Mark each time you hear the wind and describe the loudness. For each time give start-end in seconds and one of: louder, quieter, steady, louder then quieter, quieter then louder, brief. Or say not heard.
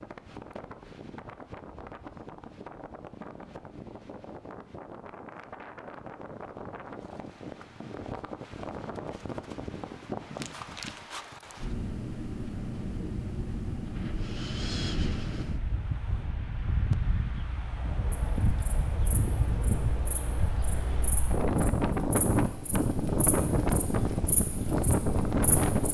0.0-25.8 louder.